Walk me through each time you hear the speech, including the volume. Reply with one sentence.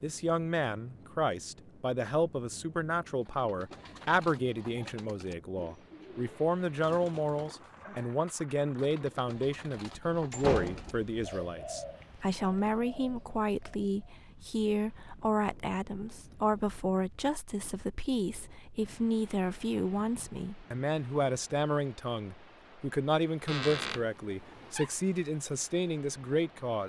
The speech can be heard from 0.0 to 26.8 s, at a steady volume.